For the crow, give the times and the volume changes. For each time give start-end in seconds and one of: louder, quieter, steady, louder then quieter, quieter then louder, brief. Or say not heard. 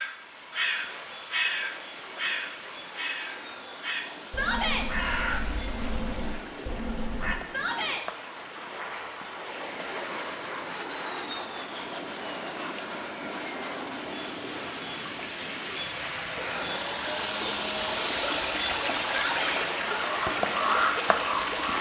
0.0-7.3 quieter
20.0-21.7 brief.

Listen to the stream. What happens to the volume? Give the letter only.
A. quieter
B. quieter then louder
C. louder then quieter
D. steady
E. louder
E.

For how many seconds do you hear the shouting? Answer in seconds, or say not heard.
2 s.